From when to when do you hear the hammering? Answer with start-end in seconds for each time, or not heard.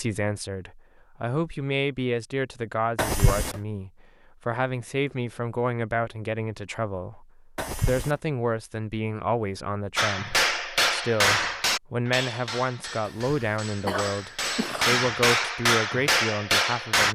9.9-17.1.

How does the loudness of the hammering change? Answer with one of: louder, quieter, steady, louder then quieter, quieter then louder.
quieter then louder.